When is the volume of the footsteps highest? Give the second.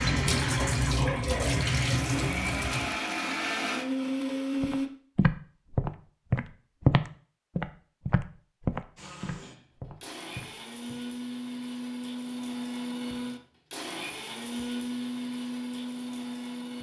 7 s.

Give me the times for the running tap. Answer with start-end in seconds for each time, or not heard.
0.0-3.0.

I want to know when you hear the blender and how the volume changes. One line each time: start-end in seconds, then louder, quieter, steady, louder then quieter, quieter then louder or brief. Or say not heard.
0.0-4.9 louder
8.9-16.7 louder.